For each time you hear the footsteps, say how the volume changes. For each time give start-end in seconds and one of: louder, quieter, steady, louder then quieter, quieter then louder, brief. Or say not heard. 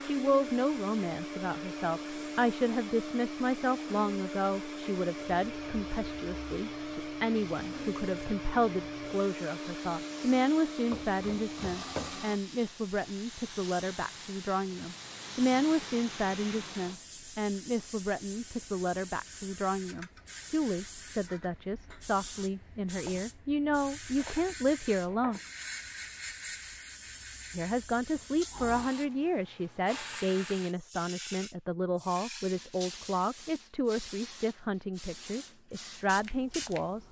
not heard.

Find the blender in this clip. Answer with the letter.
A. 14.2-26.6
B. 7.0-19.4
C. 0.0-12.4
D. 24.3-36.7
C.